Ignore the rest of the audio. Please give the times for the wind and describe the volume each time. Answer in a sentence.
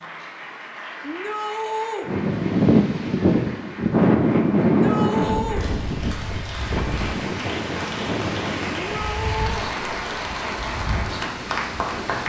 The wind can be heard from 2.0 to 12.2 s, getting quieter.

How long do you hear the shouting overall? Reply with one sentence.
You can hear the shouting for 3 seconds altogether.